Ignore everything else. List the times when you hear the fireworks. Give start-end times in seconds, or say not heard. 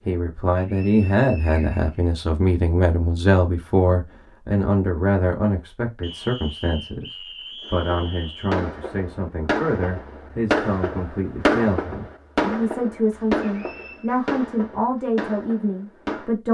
7.6-16.3.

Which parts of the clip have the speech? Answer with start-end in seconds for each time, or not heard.
0.1-16.4.